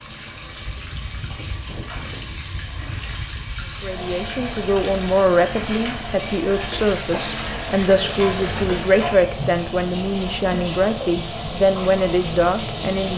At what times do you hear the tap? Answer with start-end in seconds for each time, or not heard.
0.0-13.1.